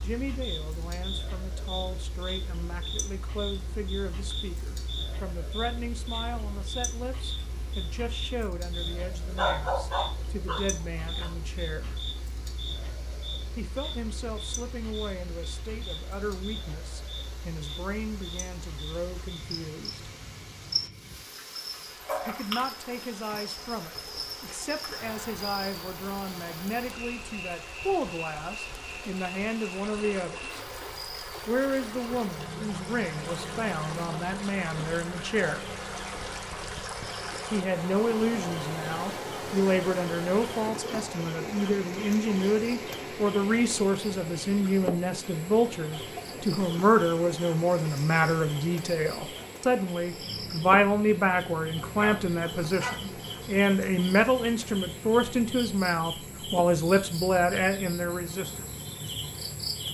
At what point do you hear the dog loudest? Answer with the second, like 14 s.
10 s.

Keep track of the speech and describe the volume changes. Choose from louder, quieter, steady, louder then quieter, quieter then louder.
louder.